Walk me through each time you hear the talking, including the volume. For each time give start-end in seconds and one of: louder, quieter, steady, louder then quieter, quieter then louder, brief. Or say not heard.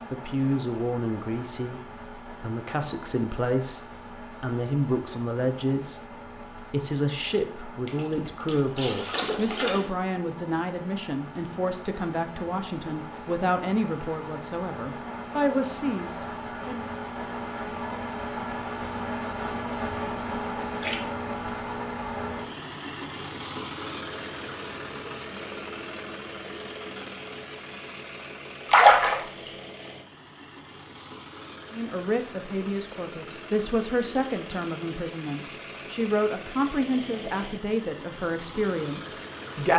0.1-16.9 steady
31.7-39.7 steady.